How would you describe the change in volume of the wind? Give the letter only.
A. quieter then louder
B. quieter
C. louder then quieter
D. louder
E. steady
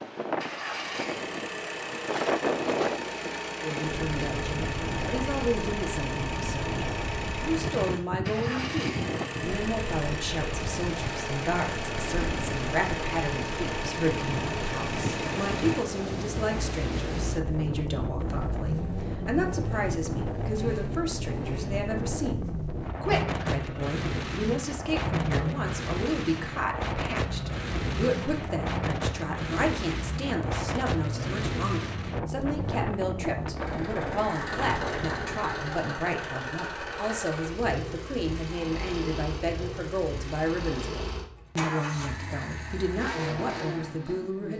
E.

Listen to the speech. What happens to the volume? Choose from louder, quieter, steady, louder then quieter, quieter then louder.
steady.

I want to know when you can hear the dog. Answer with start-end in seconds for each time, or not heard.
not heard.